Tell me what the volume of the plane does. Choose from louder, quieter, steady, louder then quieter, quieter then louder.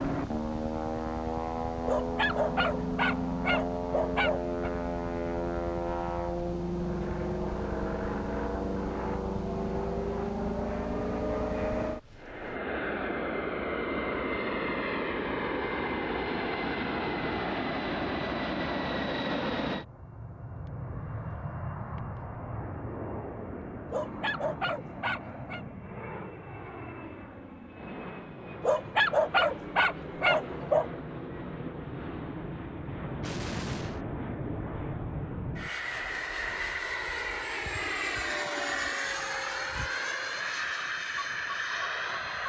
quieter then louder.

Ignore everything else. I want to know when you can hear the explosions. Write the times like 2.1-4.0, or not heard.
33.2-34.0.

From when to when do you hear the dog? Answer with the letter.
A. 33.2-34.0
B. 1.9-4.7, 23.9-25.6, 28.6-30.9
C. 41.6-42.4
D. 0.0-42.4
B.